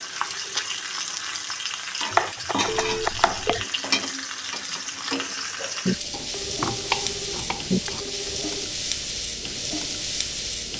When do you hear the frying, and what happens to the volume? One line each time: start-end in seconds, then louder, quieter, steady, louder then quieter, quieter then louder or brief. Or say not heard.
0.0-10.7 steady.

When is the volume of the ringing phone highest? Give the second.
3 s.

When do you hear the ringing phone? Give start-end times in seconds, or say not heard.
2.6-3.6, 6.3-8.7.